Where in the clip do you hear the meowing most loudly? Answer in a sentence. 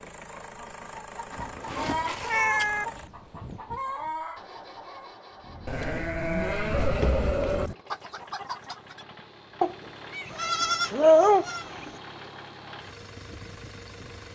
The loudest moment of the meowing is at 11 seconds.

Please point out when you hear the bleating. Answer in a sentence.
You can hear the bleating from 1.4 to 3.1 s, from 5.7 to 7.7 s and from 10.2 to 12.0 s.